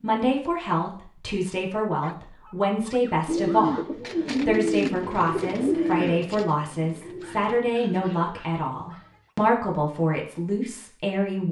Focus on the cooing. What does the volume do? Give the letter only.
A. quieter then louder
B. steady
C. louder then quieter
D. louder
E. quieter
E.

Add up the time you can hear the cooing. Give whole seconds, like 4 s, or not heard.
5 s.